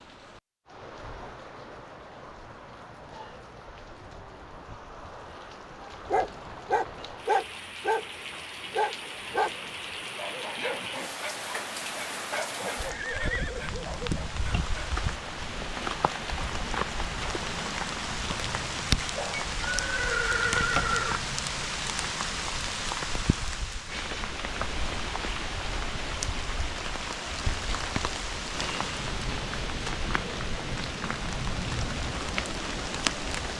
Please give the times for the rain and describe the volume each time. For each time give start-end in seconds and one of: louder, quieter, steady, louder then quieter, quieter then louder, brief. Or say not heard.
0.0-33.5 louder.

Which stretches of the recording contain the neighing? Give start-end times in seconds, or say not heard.
12.7-14.2, 19.1-21.2.